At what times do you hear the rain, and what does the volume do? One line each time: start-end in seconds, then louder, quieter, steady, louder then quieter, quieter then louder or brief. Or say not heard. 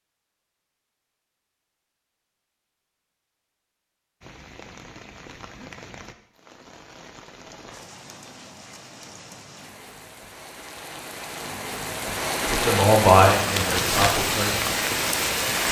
4.2-15.6 louder.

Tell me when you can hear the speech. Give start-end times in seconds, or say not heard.
12.4-14.8.